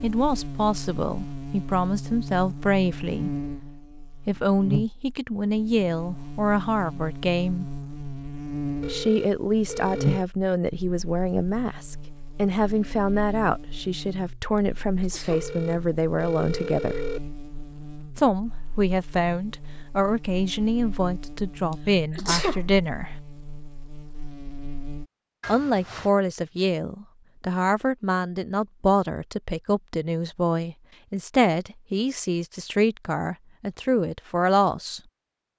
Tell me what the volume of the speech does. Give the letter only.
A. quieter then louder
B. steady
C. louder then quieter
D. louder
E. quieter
B.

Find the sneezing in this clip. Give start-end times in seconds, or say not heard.
15.0-15.4, 22.1-22.6.